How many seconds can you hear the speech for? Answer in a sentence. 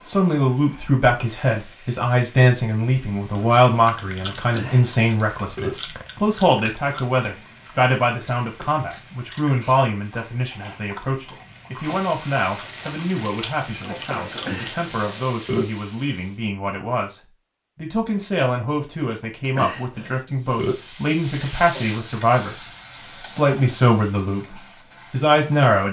You can hear the speech for 26 seconds altogether.